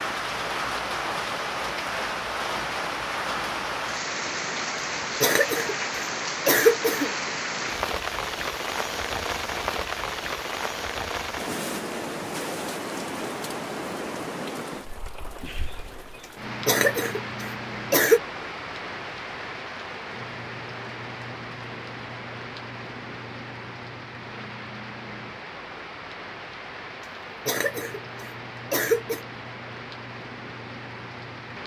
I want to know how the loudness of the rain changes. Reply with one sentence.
The loudness of the rain goes down.